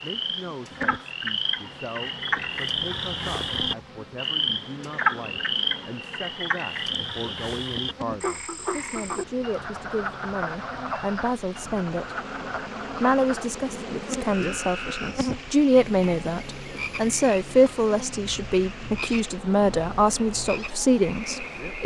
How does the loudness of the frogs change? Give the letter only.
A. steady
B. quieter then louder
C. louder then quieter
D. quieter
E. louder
D.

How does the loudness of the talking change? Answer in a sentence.
The loudness of the talking goes up.